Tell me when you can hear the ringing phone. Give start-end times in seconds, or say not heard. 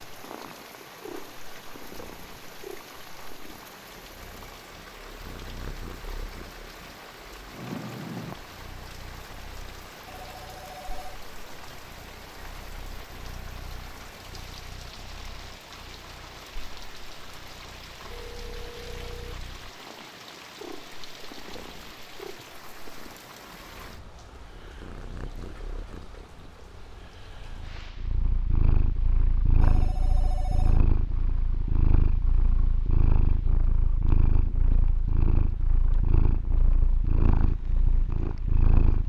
10.1-11.2, 18.1-19.4, 29.6-30.9.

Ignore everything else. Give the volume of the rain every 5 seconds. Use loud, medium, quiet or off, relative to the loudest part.
loud, loud, loud, loud, loud, medium, quiet, quiet.